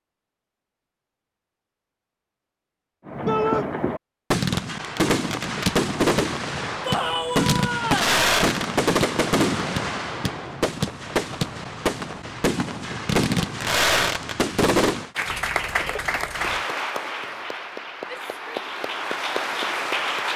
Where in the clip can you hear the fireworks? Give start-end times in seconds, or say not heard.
3.0-15.1.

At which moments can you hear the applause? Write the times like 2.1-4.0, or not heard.
15.2-20.3.